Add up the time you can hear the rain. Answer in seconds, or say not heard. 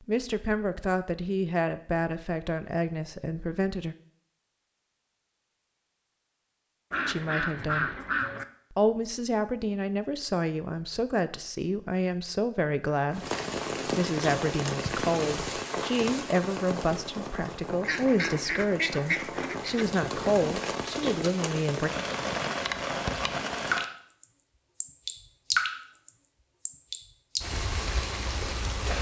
16 s.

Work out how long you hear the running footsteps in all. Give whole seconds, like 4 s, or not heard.
not heard.